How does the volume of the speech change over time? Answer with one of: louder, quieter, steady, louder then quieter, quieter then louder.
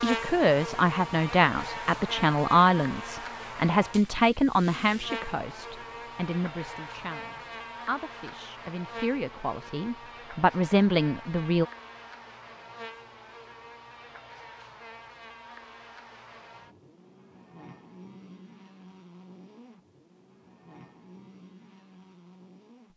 quieter then louder.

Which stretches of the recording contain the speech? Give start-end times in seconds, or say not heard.
0.0-11.7.